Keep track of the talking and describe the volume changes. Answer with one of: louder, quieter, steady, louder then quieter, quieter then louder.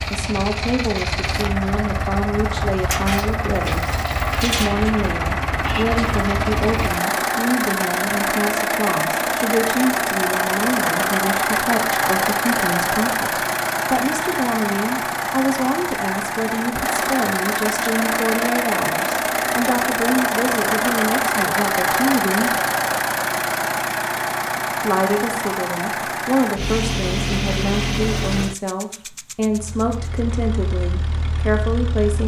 steady.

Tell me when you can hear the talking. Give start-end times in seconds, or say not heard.
0.1-22.6, 24.8-32.2.